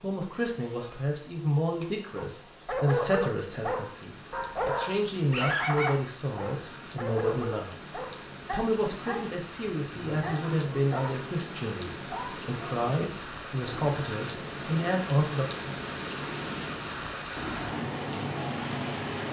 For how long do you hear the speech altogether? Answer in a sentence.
The speech can be heard for 15 seconds in total.